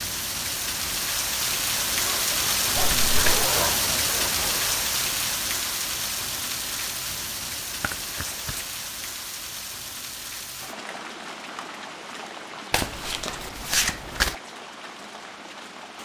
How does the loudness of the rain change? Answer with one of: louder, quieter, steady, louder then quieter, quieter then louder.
quieter.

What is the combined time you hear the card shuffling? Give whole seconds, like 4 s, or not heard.
3 s.